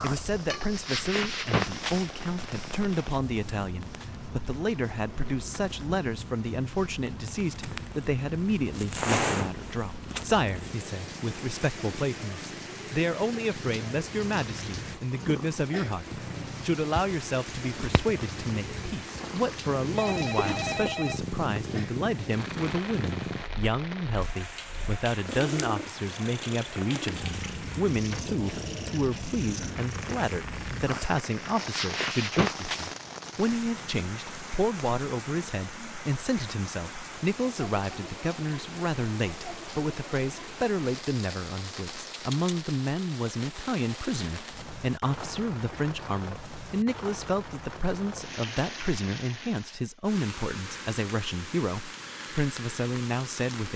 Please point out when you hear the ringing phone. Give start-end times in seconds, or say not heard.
19.9-21.7.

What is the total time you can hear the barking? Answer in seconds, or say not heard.
not heard.